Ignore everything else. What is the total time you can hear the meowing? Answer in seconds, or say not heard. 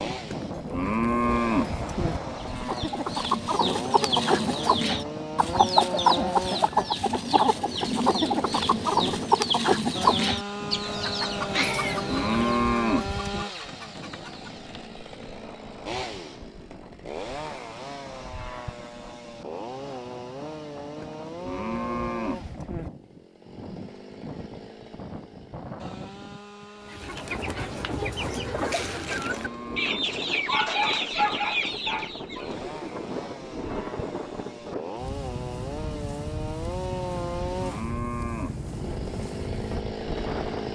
2 s.